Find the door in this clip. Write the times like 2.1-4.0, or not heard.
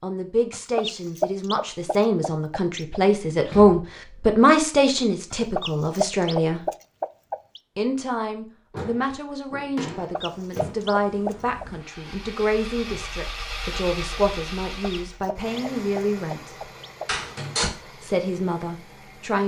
3.5-4.3, 8.7-10.8, 17.1-17.7.